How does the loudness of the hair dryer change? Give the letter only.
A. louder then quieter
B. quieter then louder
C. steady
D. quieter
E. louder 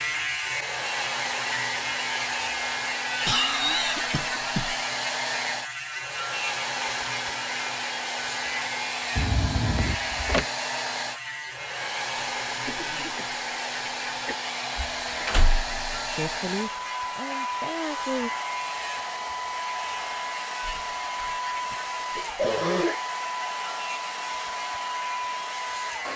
C.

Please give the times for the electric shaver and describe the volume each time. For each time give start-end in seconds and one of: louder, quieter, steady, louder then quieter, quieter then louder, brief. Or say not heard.
0.0-26.1 quieter.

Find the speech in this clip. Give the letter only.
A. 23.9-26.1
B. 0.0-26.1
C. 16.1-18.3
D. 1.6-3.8
C.